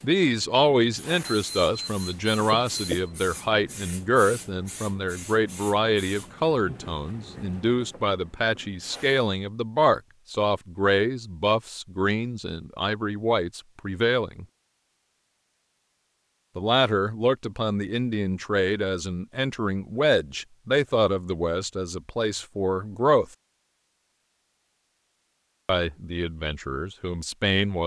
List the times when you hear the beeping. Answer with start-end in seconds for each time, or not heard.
1.3-3.1.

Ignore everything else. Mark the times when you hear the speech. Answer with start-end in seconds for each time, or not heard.
0.0-14.4, 16.6-23.2, 25.6-27.8.